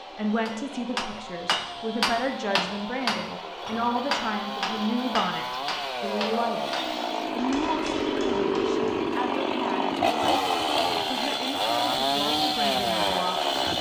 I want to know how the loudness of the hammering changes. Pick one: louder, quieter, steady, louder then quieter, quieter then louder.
quieter.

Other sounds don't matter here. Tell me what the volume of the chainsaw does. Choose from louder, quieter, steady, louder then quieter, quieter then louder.
louder.